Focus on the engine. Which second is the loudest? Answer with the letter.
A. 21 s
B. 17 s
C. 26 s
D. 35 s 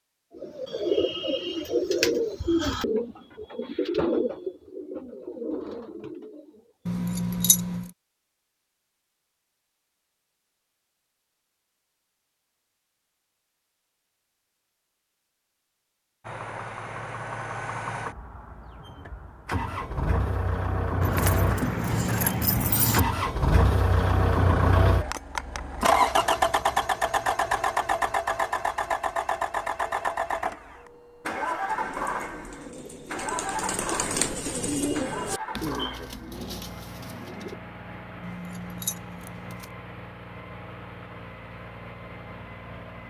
C.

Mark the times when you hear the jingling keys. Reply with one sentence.
You can hear the jingling keys from 6.8 to 7.9 s, from 21.0 to 23.0 s and from 38.2 to 39.7 s.